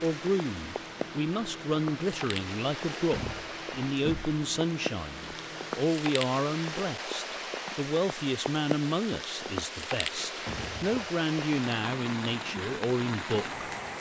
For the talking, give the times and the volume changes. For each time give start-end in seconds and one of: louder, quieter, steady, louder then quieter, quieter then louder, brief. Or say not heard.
0.0-13.7 steady.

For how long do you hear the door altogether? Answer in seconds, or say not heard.
2 s.